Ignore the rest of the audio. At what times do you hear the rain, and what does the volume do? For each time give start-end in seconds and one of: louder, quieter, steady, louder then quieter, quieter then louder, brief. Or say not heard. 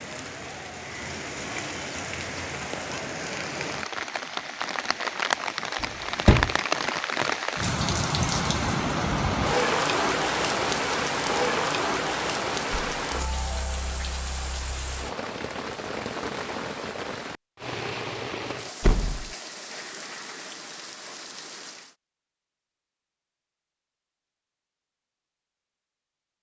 0.0-21.9 louder then quieter.